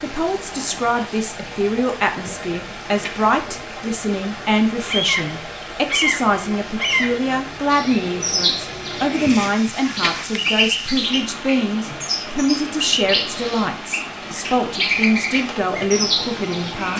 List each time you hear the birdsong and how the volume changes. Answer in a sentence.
The birdsong can be heard from 4.8 to 16.9 s, at a steady volume.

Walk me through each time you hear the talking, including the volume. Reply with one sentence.
You can hear the talking from 0.0 to 16.9 s, at a steady volume.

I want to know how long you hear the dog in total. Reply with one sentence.
The dog can't be heard in this clip.